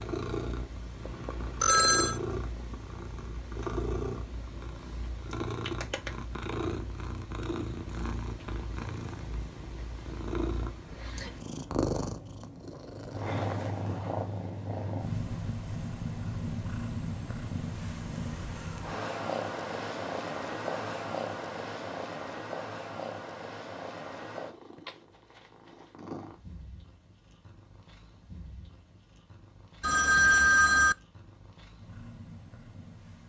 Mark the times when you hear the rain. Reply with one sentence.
The rain can't be heard in this clip.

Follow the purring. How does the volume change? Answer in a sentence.
The volume of the purring goes down.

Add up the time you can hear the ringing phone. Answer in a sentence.
The ringing phone can be heard for 2 seconds in total.